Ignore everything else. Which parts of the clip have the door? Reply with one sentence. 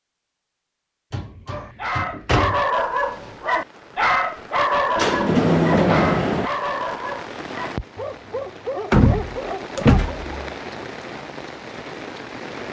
The door can be heard from 1.1 to 2.6 s, from 5.0 to 6.5 s and from 8.9 to 10.2 s.